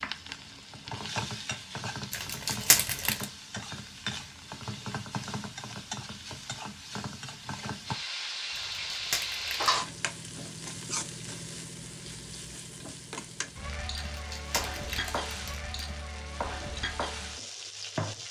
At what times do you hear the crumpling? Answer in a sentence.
You can hear the crumpling from 2.1 to 3.2 s, from 8.6 to 9.8 s and from 13.9 to 15.9 s.